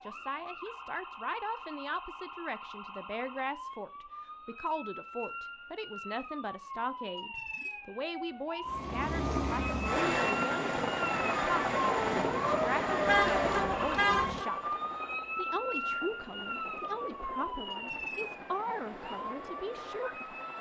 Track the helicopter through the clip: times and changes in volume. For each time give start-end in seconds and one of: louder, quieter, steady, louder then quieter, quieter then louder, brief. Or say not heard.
8.7-20.5 quieter.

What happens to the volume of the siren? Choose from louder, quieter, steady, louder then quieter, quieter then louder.
louder then quieter.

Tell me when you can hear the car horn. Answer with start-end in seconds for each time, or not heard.
13.1-14.4.